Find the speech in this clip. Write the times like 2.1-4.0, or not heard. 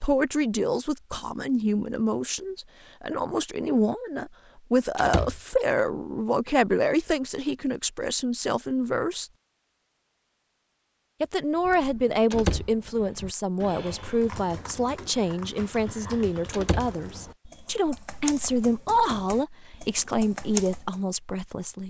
0.0-9.2, 11.2-21.8.